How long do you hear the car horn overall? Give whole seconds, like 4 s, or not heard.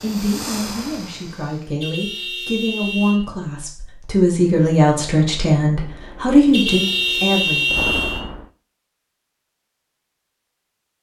3 s.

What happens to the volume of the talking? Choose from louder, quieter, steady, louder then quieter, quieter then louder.
louder.